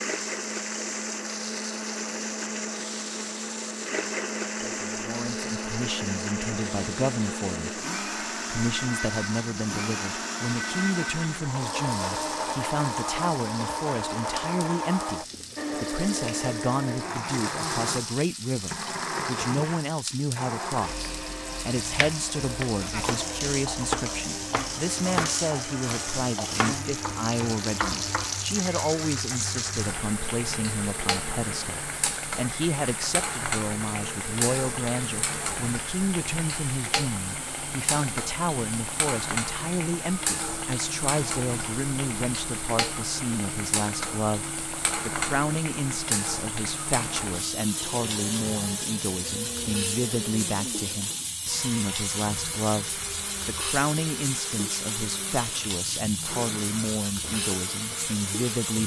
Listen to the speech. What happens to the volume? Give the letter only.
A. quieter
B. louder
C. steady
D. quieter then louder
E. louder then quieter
C.